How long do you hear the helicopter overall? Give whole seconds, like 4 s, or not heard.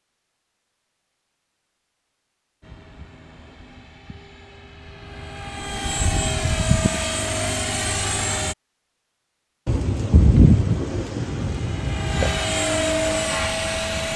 10 s.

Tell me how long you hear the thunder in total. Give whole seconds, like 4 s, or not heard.
3 s.